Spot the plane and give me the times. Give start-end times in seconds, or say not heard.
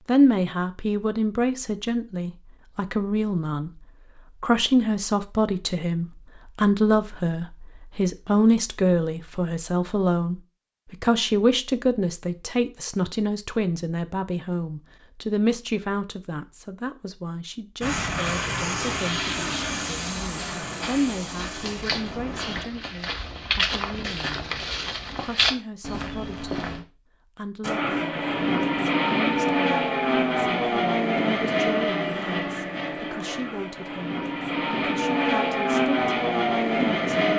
17.8-22.6, 27.6-37.3.